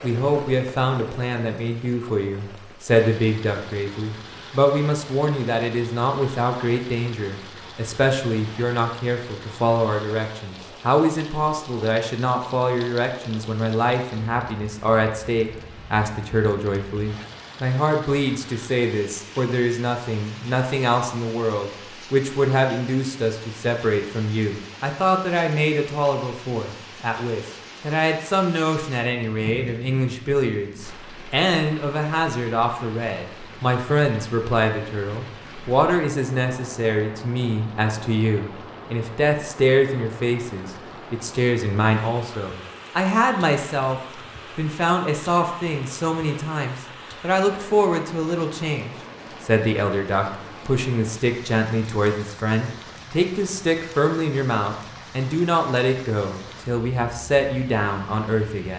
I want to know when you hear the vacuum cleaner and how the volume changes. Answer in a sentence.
You can't hear the vacuum cleaner here.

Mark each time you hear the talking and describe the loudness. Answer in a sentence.
You can hear the talking from 0.0 to 58.7 s, at a steady volume.